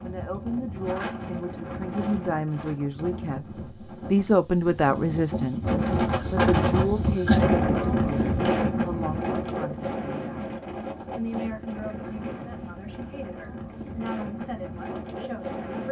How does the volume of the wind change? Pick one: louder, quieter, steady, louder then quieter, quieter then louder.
louder then quieter.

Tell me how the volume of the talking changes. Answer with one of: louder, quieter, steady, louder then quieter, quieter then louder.
louder then quieter.